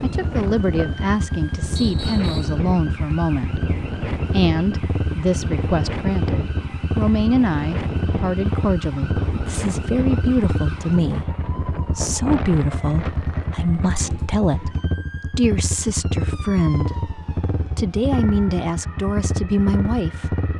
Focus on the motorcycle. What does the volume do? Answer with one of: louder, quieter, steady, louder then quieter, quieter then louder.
steady.